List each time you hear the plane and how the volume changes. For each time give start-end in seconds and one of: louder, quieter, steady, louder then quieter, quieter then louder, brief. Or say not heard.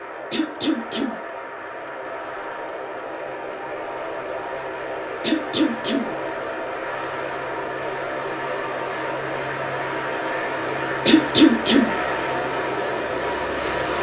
0.0-13.9 louder.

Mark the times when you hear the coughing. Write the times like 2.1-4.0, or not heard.
0.3-1.2, 5.2-6.1, 11.1-11.9.